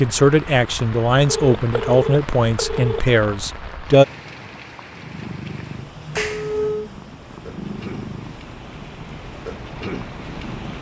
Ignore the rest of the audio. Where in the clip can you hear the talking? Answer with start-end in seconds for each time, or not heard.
0.0-4.0.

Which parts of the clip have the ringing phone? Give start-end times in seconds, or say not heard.
1.2-3.0, 6.1-6.9.